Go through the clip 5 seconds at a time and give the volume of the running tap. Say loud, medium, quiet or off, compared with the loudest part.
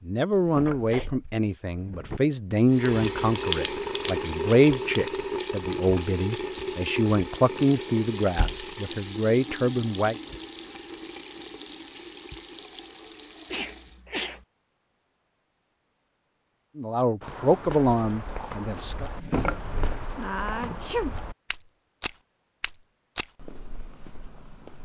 loud, medium, quiet, off, off.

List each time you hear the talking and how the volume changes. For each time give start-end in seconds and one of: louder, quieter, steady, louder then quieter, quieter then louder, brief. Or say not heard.
0.1-10.2 steady
16.8-19.1 brief.